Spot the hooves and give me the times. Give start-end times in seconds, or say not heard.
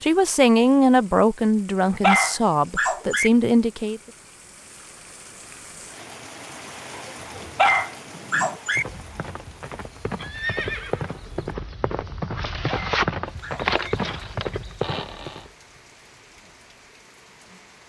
7.9-15.5.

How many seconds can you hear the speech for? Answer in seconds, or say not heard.
4 s.